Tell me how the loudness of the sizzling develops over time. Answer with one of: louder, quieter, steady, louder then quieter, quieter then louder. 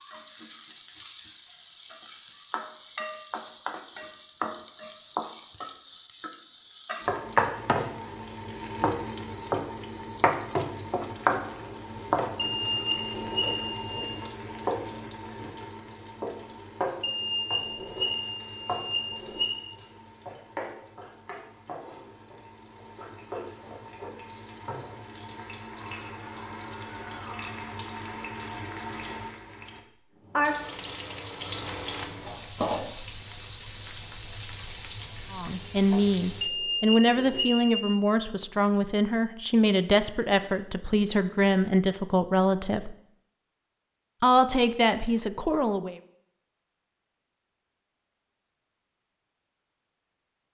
quieter then louder.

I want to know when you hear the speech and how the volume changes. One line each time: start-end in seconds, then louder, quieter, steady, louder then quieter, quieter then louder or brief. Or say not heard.
35.3-43.0 steady
44.2-46.0 brief.